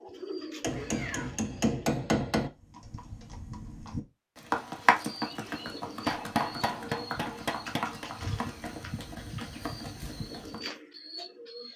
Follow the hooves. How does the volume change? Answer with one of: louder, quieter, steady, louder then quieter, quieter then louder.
louder then quieter.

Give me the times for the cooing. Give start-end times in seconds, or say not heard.
0.0-2.0, 5.0-11.7.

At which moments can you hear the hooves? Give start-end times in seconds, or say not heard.
2.4-10.6.